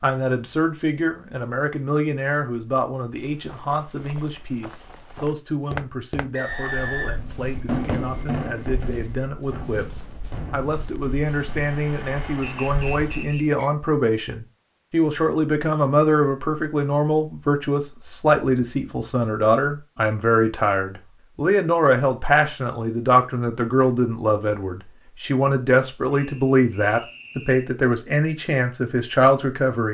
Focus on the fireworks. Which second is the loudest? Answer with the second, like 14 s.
8 s.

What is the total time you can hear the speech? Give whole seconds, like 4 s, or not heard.
30 s.